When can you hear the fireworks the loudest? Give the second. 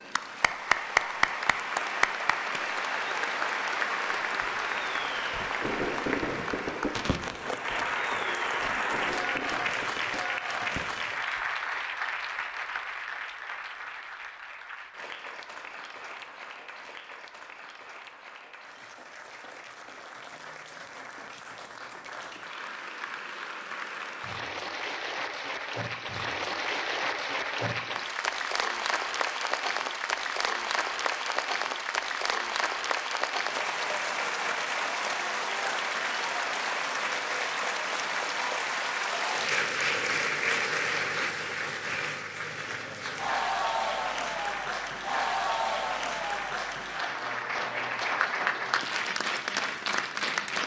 6 s.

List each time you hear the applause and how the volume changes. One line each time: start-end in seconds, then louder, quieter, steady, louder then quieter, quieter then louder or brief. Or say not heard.
0.0-50.6 quieter then louder.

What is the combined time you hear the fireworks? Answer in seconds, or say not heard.
7 s.